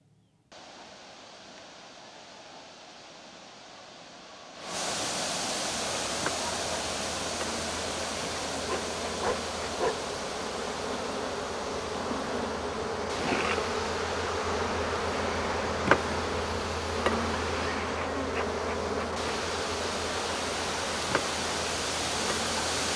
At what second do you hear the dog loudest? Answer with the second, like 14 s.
10 s.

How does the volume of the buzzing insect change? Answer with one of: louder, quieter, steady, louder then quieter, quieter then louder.
louder then quieter.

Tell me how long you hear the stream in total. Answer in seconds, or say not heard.
23 s.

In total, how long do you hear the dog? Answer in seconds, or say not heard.
2 s.